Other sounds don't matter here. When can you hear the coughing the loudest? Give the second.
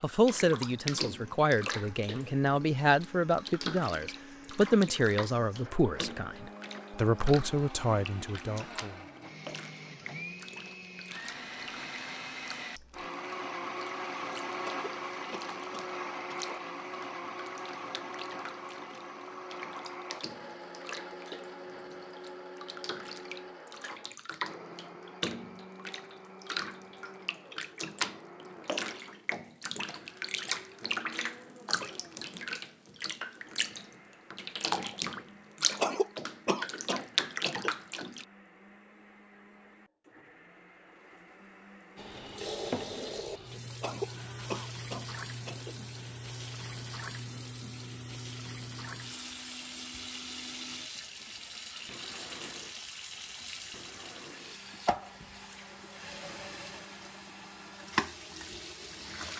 36 s.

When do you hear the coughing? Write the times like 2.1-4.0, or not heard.
14.6-16.6, 35.8-37.8, 43.8-45.8.